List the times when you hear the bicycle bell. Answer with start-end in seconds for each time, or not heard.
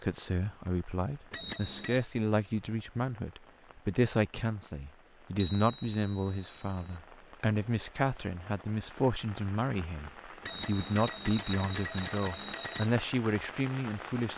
1.3-2.0, 5.3-6.9, 10.4-12.9.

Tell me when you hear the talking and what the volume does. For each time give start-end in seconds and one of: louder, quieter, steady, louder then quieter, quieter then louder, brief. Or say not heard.
0.0-14.3 steady.